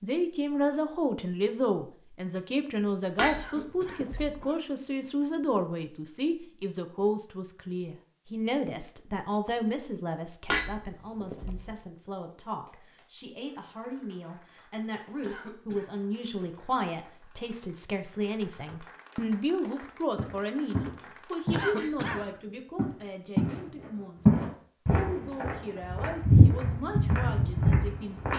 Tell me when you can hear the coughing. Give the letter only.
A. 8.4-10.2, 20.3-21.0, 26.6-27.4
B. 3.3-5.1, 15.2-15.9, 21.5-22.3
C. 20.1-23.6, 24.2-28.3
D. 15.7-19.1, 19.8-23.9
B.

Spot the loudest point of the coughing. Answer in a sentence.
The volume of the coughing peaks at 22 seconds.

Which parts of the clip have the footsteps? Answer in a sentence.
The footsteps can be heard from 20.1 to 23.6 s and from 24.2 to 28.3 s.